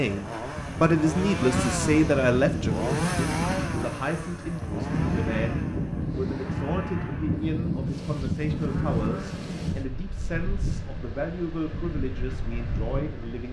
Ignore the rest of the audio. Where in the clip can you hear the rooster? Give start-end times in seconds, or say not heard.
not heard.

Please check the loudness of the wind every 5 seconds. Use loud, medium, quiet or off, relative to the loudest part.
loud, loud, medium.